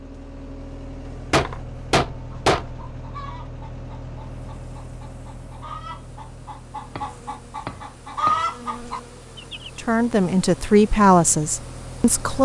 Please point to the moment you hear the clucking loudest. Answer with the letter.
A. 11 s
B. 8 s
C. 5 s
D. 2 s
B.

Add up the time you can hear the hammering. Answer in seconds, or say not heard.
3 s.